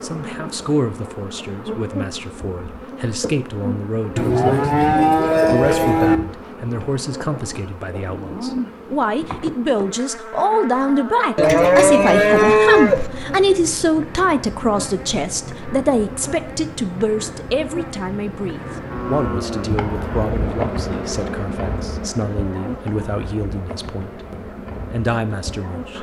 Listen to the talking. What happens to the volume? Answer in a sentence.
The volume of the talking goes up, then down.